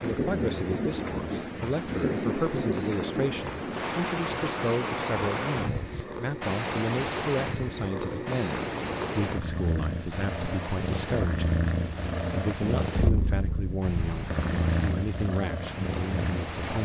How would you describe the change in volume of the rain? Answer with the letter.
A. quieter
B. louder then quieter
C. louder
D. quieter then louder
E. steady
A.